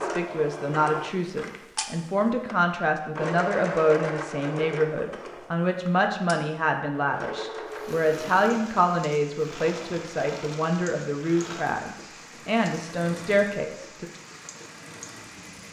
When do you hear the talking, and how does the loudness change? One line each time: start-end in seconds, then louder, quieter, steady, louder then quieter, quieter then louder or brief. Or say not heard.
0.0-14.1 steady.